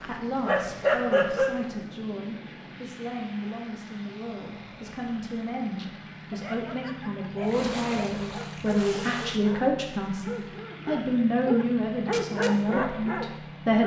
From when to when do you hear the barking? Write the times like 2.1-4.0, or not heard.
0.0-1.7, 5.7-13.8.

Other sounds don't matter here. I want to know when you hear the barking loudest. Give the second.
1 s.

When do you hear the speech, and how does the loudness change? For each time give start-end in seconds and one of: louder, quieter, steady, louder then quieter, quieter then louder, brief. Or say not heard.
0.1-13.8 louder.